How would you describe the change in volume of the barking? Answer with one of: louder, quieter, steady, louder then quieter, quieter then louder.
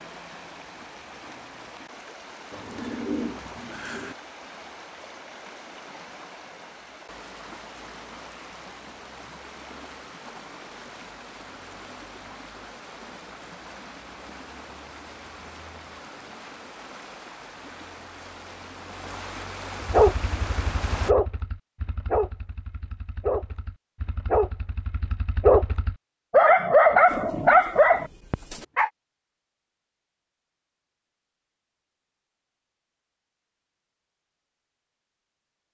louder.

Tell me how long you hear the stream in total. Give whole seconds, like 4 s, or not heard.
21 s.